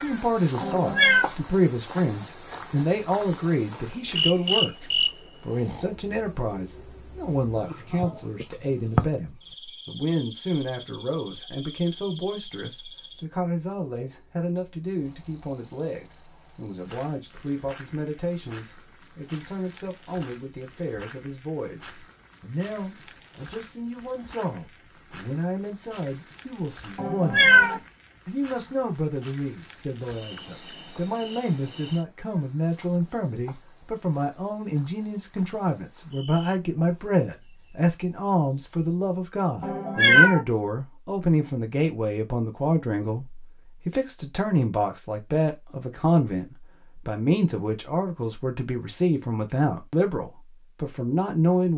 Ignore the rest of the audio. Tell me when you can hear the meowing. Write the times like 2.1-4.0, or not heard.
0.6-1.2, 26.9-27.8, 39.6-40.4.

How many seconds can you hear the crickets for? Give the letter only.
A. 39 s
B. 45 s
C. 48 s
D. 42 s
A.